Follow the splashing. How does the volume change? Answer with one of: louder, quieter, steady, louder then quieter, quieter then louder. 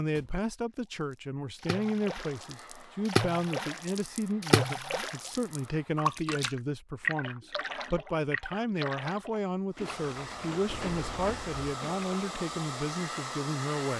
quieter.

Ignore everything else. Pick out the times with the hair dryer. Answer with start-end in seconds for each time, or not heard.
2.1-6.0, 9.7-13.9.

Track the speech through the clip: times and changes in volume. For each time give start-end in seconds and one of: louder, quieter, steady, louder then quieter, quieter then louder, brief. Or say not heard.
0.0-13.9 steady.